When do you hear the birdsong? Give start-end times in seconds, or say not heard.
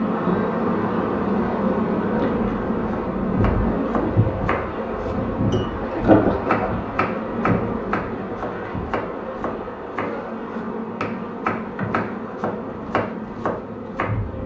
not heard.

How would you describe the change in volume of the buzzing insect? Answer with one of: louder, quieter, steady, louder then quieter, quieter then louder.
quieter.